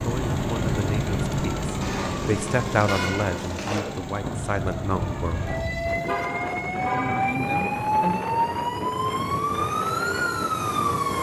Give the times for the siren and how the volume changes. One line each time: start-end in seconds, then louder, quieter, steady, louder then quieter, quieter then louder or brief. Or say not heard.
0.0-11.1 quieter then louder.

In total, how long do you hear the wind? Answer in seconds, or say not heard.
7 s.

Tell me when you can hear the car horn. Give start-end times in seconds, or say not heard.
1.8-3.8, 6.0-7.3.